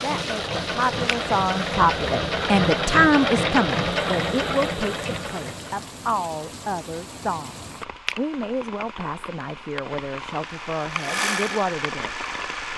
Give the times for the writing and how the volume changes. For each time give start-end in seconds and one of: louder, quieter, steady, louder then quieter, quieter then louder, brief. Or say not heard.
not heard.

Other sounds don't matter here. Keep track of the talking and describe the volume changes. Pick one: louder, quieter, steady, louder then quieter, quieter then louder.
quieter.